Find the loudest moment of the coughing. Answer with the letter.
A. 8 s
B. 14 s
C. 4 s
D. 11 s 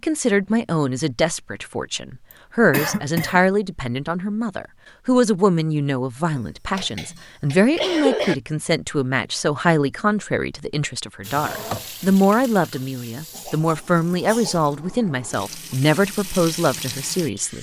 A.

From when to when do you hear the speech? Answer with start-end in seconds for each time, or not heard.
0.0-17.5.